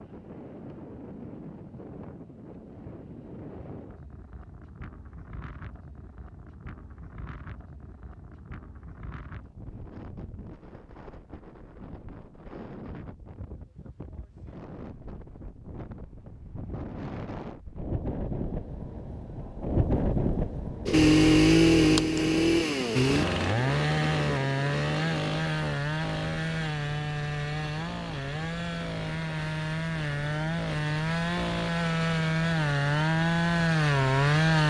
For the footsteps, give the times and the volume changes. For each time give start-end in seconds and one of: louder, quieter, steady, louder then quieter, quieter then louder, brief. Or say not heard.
not heard.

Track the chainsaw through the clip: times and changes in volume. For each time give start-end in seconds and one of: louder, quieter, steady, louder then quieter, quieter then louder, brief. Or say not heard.
20.9-34.6 quieter then louder.